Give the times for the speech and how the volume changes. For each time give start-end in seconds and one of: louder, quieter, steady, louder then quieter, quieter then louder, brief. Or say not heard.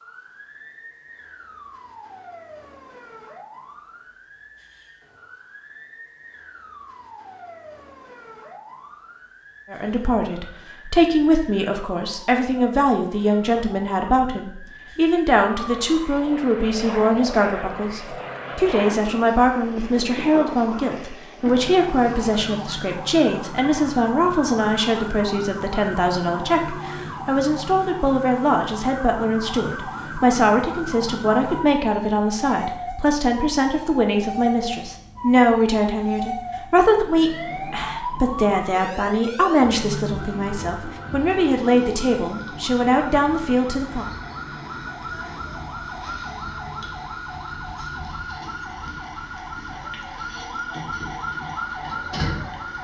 9.7-44.1 steady.